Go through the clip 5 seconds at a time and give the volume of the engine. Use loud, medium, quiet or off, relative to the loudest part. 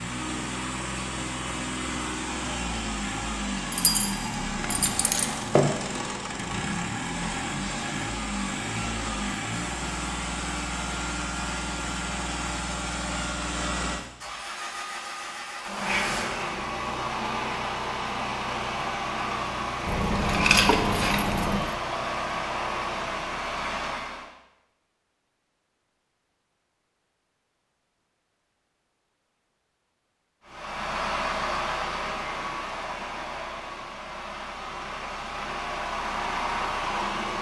loud, loud, loud, loud, loud, off, loud, loud.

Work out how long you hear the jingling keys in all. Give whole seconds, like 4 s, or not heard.
4 s.